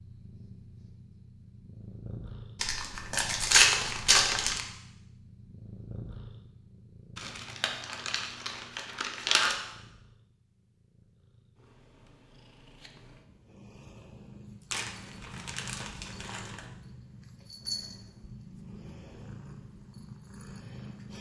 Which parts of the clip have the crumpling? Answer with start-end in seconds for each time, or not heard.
2.6-4.6, 7.2-9.6, 14.7-16.6.